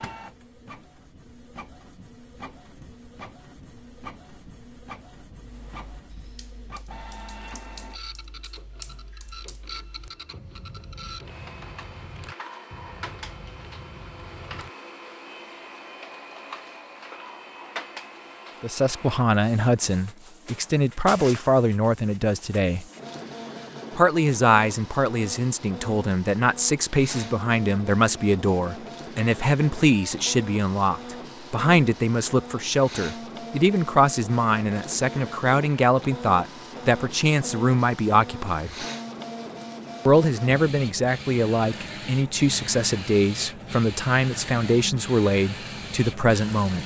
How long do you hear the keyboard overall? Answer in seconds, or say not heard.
9 s.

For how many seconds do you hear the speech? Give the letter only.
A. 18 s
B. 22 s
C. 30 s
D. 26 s
D.